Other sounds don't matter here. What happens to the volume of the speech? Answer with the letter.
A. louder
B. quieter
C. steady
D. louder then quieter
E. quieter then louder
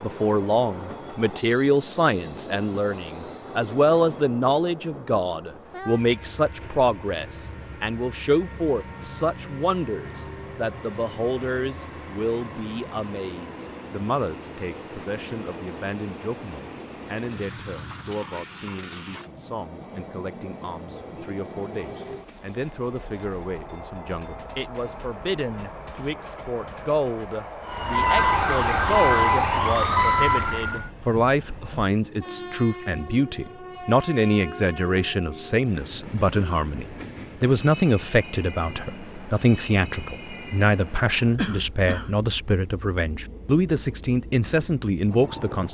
E.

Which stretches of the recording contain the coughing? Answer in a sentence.
You can hear the coughing from 41.4 to 42.1 s.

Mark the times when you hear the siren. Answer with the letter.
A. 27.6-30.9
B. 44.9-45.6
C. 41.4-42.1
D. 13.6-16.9
A.